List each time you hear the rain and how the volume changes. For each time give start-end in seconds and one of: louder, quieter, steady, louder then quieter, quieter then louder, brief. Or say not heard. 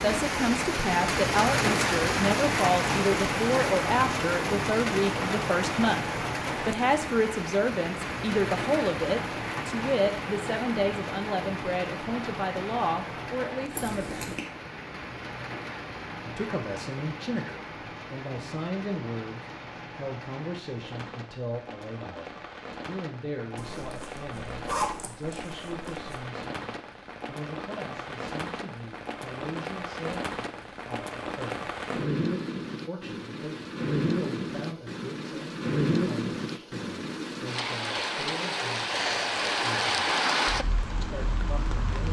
0.0-42.0 quieter then louder.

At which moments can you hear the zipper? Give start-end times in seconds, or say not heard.
13.7-14.4, 23.6-26.1.